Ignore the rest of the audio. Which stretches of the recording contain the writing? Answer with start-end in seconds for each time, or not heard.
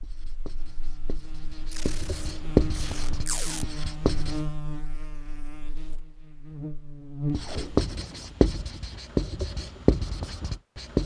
0.0-4.4, 7.3-11.0.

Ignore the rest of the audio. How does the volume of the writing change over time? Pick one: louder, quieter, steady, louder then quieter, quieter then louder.
louder.